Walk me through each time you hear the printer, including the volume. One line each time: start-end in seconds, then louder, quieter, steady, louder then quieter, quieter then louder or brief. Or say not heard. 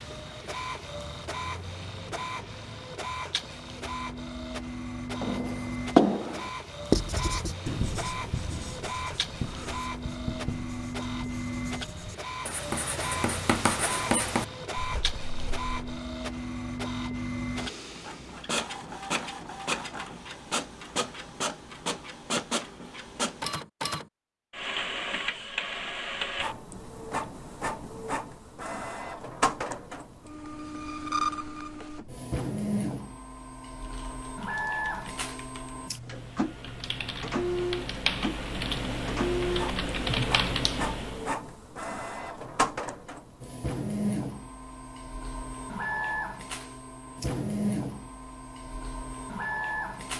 0.0-50.1 steady.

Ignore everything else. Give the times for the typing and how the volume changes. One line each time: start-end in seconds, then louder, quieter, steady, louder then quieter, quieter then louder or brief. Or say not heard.
33.8-41.4 louder.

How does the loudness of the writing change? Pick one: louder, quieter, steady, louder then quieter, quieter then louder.
quieter then louder.